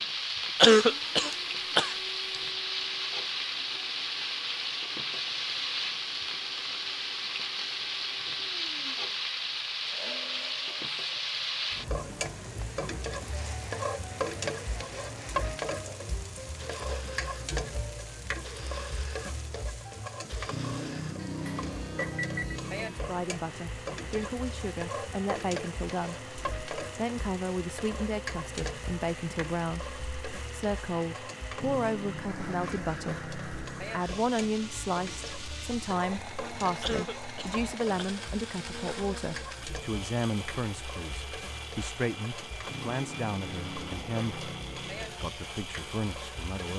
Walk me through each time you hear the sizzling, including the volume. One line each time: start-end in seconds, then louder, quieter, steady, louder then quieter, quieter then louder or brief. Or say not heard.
0.0-46.7 quieter.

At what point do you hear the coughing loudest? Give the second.
1 s.